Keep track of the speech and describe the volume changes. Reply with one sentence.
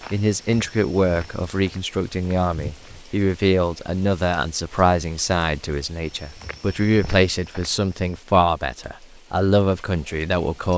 The loudness of the speech stays about the same.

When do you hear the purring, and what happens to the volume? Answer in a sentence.
The purring can't be heard in this clip.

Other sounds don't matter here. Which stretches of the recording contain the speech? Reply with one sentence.
The speech can be heard from 0.1 to 10.7 s.